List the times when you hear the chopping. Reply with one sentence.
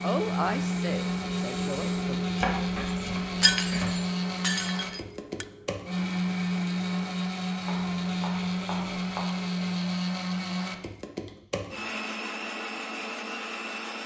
The chopping can be heard from 2.3 to 4.0 s and from 7.7 to 9.2 s.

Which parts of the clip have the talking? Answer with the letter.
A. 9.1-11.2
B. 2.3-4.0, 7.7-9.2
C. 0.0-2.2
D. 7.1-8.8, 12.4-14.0
C.